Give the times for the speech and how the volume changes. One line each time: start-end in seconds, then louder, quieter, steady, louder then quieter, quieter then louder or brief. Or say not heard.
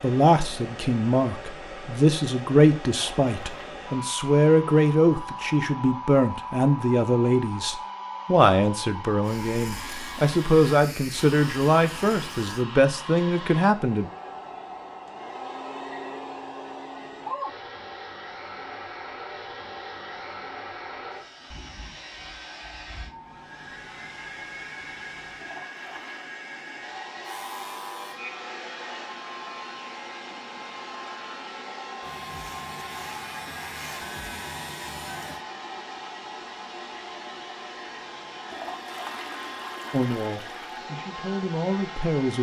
0.0-14.1 steady
39.9-42.3 brief.